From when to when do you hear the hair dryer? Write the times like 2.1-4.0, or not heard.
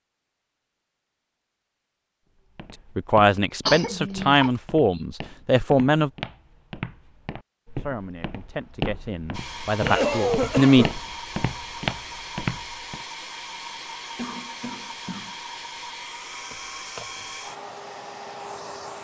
9.3-19.0.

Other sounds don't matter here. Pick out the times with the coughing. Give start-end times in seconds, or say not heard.
3.6-4.5, 9.8-10.9, 14.2-15.3.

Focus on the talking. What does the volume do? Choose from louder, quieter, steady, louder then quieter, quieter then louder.
quieter then louder.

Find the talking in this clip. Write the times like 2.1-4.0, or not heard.
3.0-6.1, 7.8-10.8.